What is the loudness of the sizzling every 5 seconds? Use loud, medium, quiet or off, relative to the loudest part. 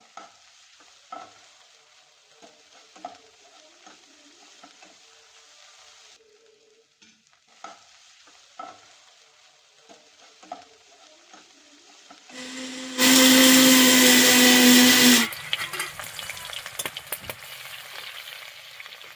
quiet, quiet, quiet, loud.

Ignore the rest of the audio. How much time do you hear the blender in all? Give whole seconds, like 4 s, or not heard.
3 s.